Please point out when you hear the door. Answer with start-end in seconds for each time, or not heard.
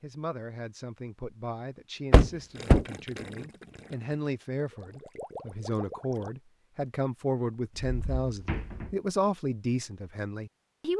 2.1-2.9, 7.8-8.9.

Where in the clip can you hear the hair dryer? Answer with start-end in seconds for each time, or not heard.
not heard.